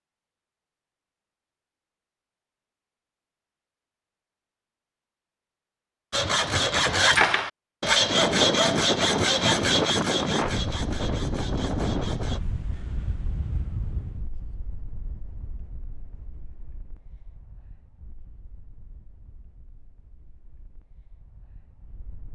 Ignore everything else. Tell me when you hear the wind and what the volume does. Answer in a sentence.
The wind can be heard from 8.0 to 22.3 s, getting quieter.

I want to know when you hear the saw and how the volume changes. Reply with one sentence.
The saw can be heard from 6.1 to 12.4 s, getting quieter.